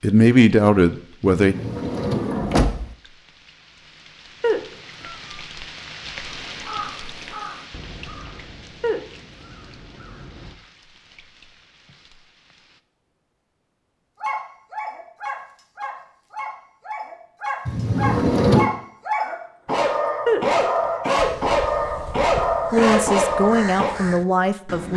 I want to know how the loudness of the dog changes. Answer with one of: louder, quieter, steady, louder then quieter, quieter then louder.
louder.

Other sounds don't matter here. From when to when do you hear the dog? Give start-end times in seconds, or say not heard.
14.2-23.9.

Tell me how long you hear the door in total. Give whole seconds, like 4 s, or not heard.
3 s.